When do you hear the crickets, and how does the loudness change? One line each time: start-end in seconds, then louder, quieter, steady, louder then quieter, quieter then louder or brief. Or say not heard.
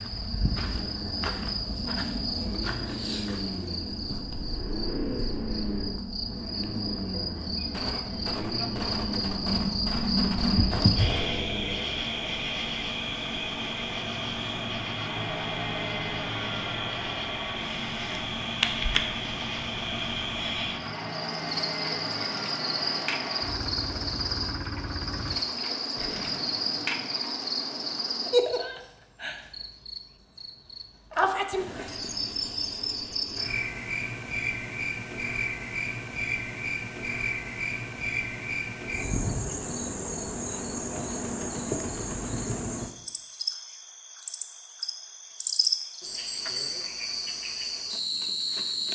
0.0-48.8 steady.